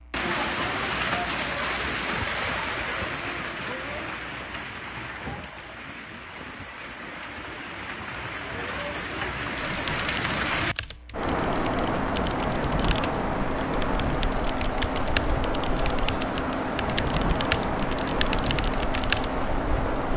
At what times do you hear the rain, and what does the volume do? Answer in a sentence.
The rain can be heard from 0.0 to 20.1 s, getting quieter then louder.